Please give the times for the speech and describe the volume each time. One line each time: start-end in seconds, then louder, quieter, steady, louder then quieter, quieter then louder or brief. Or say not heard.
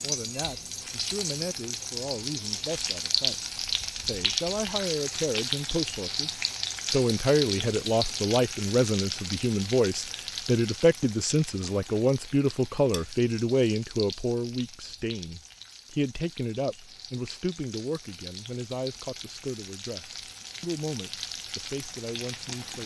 0.0-22.8 louder then quieter.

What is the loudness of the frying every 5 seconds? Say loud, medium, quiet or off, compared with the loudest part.
loud, loud, medium, quiet, medium.